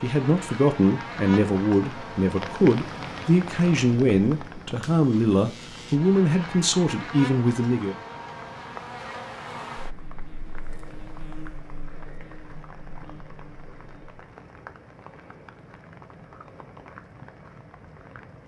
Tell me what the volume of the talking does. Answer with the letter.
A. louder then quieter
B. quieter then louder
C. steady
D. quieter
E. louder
C.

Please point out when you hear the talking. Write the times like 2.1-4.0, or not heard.
0.0-8.0.